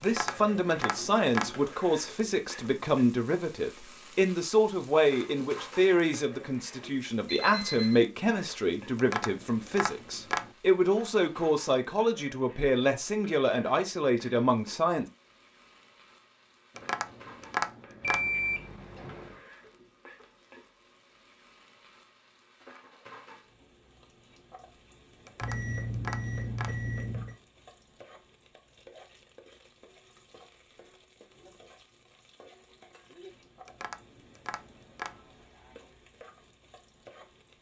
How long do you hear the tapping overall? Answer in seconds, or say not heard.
8 s.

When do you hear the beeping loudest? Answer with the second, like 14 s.
18 s.